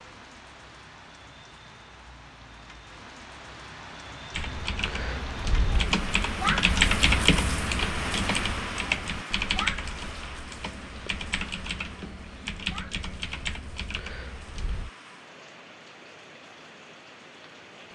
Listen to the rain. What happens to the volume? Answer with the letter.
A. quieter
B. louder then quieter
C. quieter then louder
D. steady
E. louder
B.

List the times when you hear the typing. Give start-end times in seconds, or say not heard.
4.3-14.9.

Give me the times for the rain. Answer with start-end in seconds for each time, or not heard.
0.0-17.9.